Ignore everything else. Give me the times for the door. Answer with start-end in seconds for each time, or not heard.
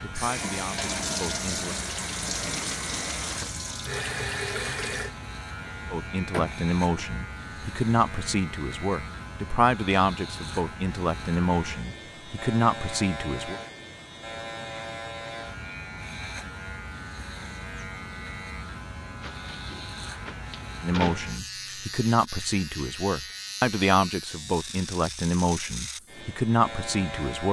6.3-7.0, 19.2-21.2.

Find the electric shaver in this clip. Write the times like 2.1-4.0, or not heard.
0.0-27.4.